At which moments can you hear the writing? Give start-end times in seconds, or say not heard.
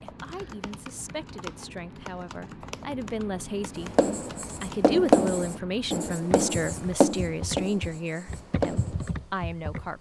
4.0-9.1.